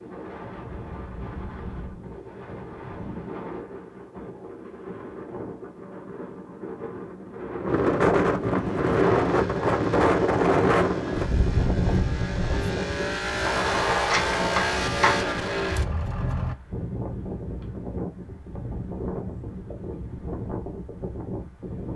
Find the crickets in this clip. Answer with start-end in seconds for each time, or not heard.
not heard.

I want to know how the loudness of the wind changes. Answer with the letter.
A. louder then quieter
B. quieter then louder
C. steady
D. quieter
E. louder
A.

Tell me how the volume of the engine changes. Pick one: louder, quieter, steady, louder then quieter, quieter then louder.
louder.